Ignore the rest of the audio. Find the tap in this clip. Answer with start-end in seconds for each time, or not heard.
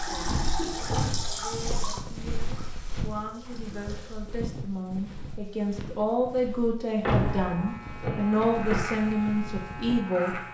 0.0-4.3.